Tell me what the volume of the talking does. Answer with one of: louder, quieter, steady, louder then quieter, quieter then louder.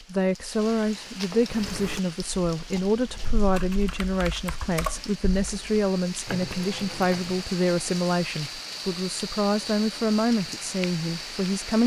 steady.